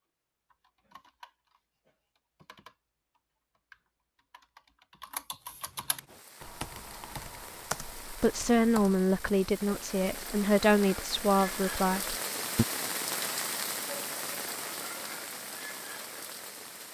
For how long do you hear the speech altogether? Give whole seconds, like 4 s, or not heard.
5 s.